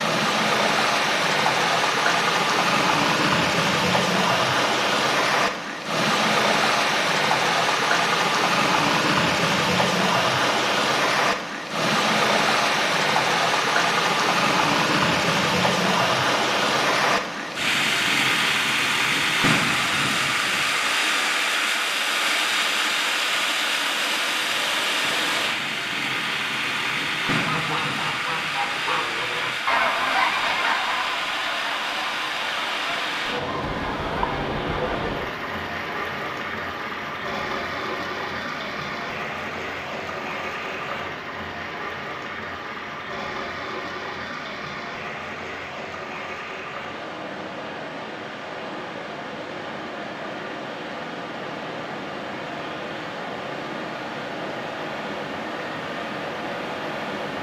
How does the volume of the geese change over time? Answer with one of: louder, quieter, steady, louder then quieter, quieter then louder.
louder then quieter.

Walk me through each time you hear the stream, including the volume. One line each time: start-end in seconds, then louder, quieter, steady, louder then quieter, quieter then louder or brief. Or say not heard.
0.0-57.3 quieter.